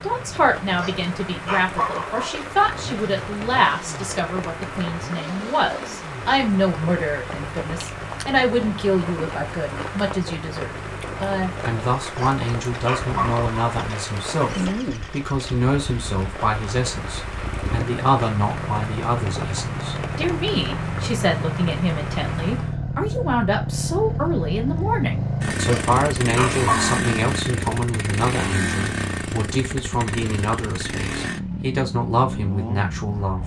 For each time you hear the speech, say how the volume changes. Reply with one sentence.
The speech can be heard from 0.0 to 33.4 s, at a steady volume.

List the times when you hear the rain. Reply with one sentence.
You can hear the rain from 0.0 to 22.8 s.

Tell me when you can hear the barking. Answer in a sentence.
You can hear the barking from 0.7 to 2.4 s, from 12.1 to 13.5 s and from 25.6 to 27.0 s.